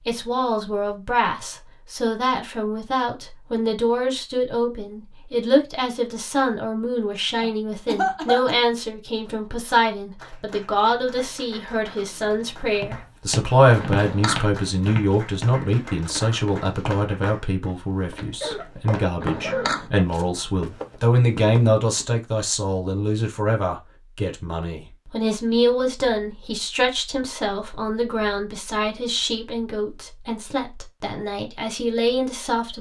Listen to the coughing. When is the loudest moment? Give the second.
8 s.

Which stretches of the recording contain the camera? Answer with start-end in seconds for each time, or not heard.
13.8-14.4, 19.2-19.9.